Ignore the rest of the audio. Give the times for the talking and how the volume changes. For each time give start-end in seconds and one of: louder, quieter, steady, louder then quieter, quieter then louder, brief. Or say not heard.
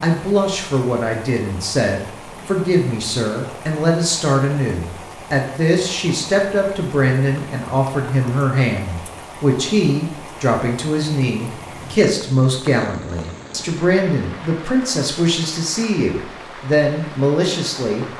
0.0-18.1 steady.